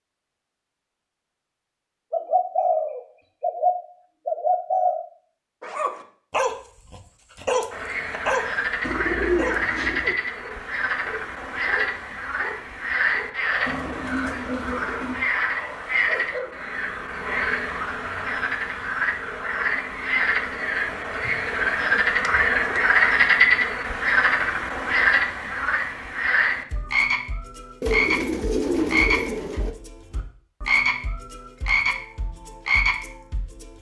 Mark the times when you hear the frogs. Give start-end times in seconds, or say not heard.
7.7-33.7.